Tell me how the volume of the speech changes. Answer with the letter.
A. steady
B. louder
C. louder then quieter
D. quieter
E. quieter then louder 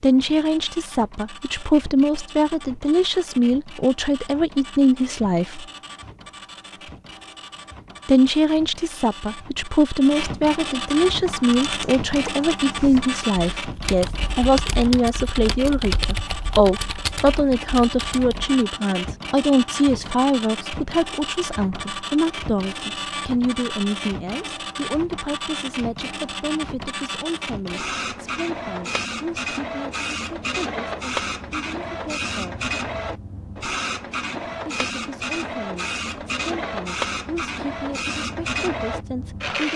D.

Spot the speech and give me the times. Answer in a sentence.
The speech can be heard from 0.0 to 5.7 s, from 8.1 to 32.6 s and from 34.6 to 39.7 s.